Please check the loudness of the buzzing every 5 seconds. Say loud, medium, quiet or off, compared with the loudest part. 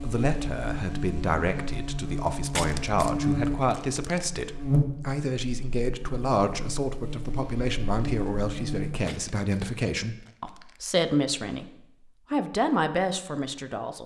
loud, medium, off.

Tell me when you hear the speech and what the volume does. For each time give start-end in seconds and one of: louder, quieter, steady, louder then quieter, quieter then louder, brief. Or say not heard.
0.0-11.7 steady
12.3-14.0 brief.